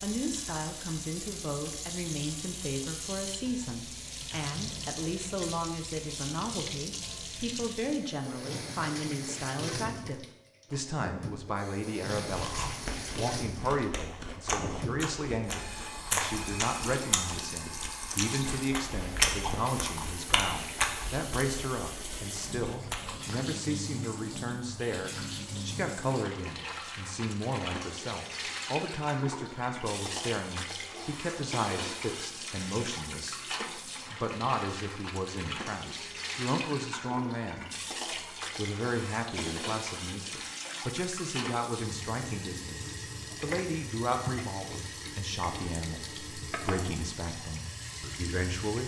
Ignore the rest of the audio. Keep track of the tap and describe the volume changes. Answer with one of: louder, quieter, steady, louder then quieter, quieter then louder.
steady.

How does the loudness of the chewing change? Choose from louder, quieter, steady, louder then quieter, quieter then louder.
louder then quieter.